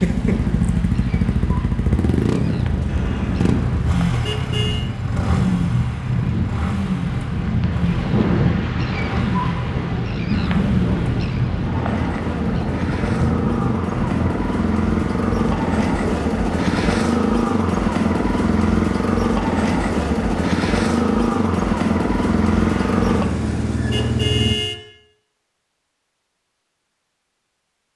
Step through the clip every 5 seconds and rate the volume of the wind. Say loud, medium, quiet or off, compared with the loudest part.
medium, loud, loud, off, off, off.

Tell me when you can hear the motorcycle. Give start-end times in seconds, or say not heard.
0.0-24.6.